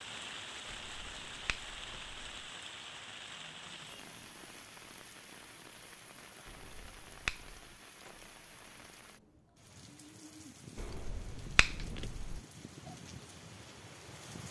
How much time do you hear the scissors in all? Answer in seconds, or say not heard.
4 s.